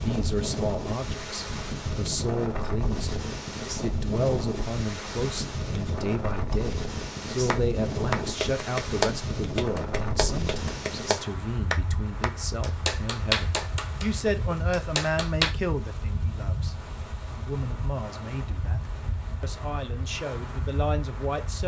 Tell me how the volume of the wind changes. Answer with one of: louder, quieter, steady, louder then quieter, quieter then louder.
quieter.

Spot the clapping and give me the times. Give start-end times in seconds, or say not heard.
7.5-15.6.